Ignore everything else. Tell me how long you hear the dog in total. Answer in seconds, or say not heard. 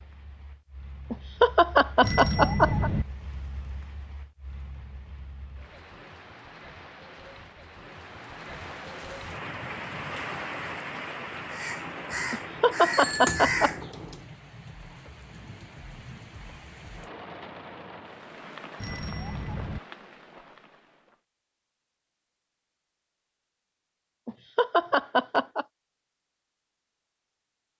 not heard.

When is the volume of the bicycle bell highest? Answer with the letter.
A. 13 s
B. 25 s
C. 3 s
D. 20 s
C.